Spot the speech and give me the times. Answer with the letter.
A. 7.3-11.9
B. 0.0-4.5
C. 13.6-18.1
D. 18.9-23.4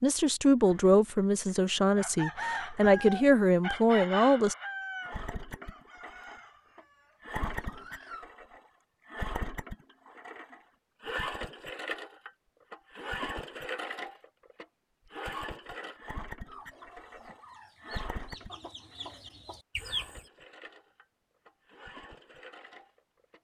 B.